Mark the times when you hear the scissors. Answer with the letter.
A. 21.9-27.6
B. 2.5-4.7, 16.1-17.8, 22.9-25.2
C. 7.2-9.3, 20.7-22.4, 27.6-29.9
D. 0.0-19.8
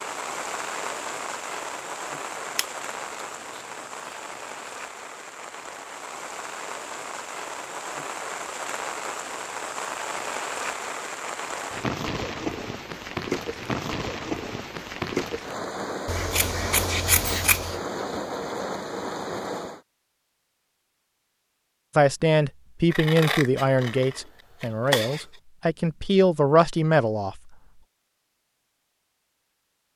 B.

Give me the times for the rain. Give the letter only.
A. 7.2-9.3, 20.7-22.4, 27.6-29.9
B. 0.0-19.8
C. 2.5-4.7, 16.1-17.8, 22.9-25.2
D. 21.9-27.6
B.